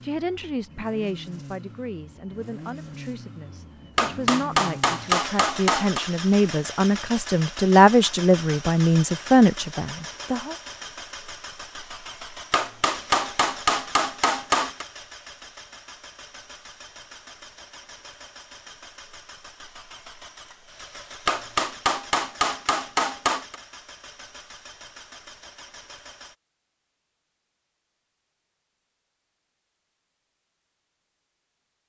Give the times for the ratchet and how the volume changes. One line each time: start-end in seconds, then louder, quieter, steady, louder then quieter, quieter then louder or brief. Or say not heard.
not heard.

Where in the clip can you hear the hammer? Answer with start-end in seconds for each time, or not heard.
4.0-6.0, 12.5-14.8, 21.2-23.6.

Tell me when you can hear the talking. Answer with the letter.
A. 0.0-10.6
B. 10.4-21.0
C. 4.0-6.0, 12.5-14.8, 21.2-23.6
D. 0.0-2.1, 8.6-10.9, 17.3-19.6
A.